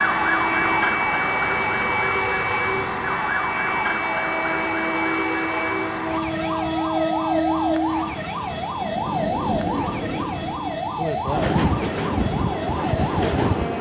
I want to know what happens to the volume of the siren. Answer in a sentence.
The volume of the siren goes down.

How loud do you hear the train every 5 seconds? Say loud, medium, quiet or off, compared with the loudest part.
medium, loud, loud.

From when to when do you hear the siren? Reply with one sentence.
The siren can be heard from 0.0 to 13.7 s.